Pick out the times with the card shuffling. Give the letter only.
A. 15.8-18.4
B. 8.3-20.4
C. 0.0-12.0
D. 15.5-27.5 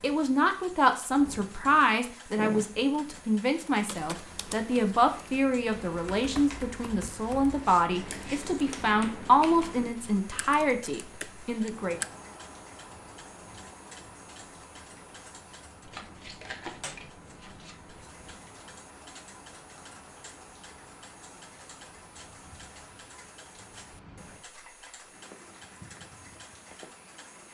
A.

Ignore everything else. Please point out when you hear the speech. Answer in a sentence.
You can hear the speech from 0.0 to 12.0 s.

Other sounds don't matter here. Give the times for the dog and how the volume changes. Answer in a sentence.
You can't hear the dog here.